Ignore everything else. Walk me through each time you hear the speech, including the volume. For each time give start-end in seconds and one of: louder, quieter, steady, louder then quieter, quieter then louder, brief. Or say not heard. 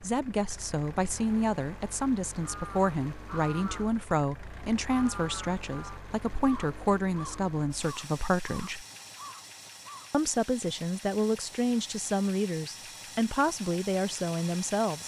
0.0-8.8 steady
10.1-15.0 steady.